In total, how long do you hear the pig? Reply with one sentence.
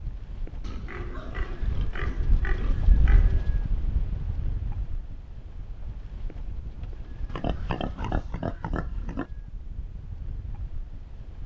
The pig can be heard for 5 seconds in total.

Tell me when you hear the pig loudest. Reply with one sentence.
The volume of the pig peaks at 8 seconds.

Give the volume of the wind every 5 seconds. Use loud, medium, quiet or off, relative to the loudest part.
loud, medium, medium.